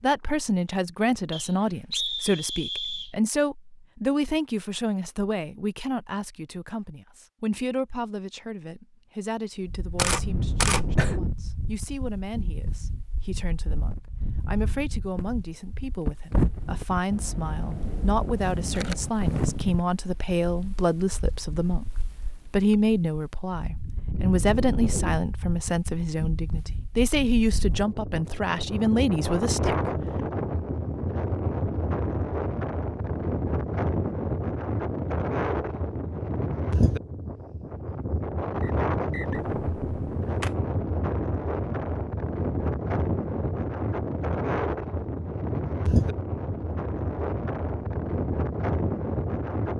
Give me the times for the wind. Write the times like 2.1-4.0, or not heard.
9.6-49.7.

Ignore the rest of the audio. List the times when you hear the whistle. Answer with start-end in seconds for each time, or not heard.
1.3-3.1, 38.6-39.4.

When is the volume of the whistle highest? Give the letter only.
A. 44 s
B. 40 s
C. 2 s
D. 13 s
C.